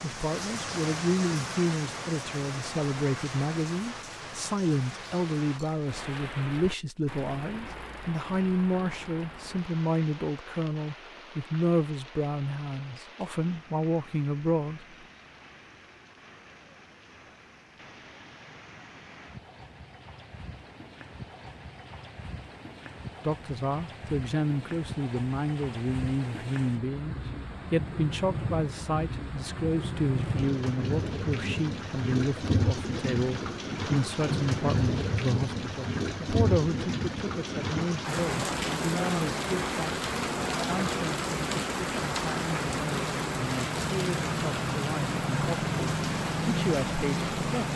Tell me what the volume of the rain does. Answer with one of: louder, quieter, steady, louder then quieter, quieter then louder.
quieter then louder.